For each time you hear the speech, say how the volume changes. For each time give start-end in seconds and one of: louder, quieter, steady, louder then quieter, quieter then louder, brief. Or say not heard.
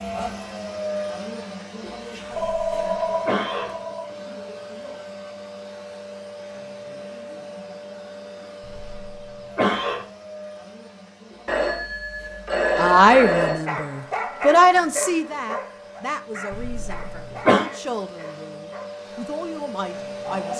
12.8-20.5 quieter.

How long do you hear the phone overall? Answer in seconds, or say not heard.
4 s.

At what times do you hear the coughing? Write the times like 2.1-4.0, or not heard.
2.3-3.7, 8.7-10.1, 16.5-17.6.